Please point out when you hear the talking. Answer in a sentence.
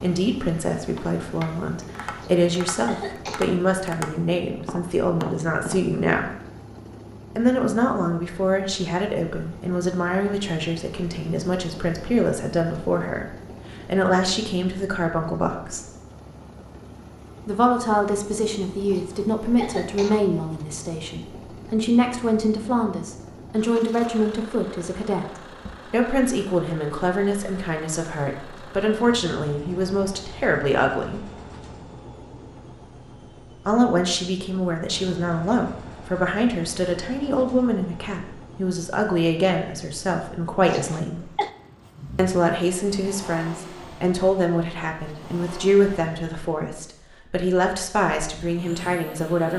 The talking can be heard from 0.0 to 6.3 s, from 7.3 to 15.8 s, from 17.4 to 31.2 s, from 33.6 to 41.3 s and from 42.1 to 49.5 s.